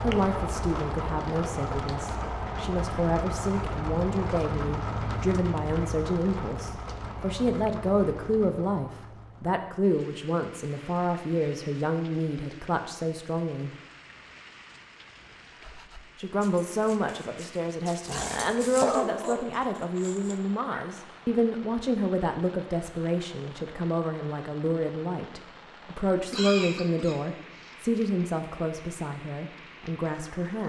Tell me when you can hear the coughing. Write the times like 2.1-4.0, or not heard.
26.3-27.7.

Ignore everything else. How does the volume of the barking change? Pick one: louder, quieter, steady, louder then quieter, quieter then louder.
louder then quieter.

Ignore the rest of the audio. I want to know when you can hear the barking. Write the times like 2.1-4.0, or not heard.
15.5-20.9.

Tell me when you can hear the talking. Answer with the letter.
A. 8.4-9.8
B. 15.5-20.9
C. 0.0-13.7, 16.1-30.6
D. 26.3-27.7
C.